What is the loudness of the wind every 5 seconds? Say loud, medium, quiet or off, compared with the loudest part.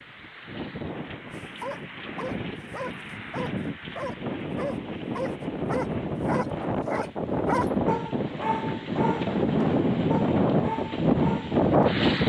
quiet, medium, loud.